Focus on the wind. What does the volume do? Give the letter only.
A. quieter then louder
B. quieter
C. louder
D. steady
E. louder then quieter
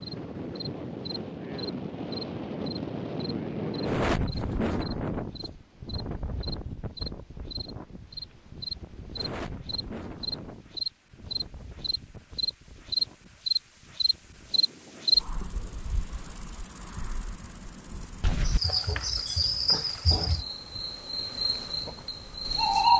B.